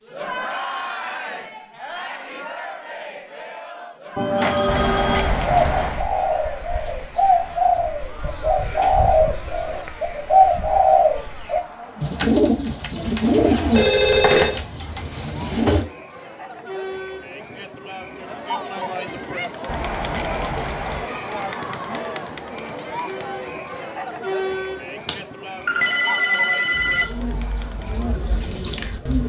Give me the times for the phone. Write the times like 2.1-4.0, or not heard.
4.2-5.3, 13.7-14.6, 25.1-27.1.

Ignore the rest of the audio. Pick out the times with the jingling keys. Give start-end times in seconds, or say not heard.
4.7-6.0, 19.6-21.1.